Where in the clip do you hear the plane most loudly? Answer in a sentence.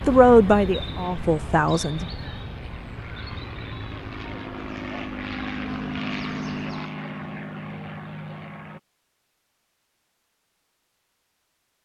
The loudest moment of the plane is at 6 seconds.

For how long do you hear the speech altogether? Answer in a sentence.
The speech can be heard for 2 seconds in total.